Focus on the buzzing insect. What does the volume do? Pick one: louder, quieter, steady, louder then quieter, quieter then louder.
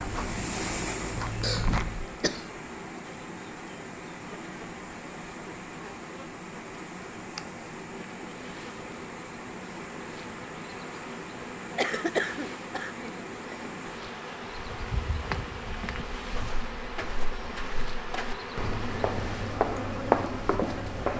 louder.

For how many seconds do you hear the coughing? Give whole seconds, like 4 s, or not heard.
3 s.